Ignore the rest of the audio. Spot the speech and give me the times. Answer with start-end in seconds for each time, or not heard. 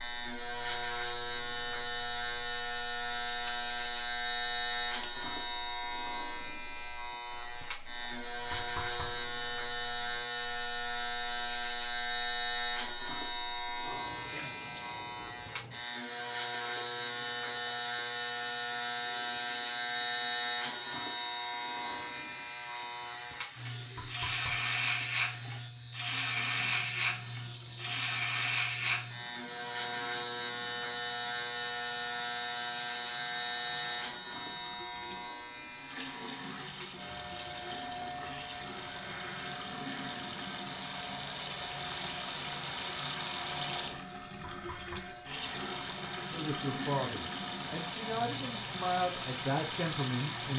46.3-50.5.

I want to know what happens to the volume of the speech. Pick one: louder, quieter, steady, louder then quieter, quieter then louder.
quieter then louder.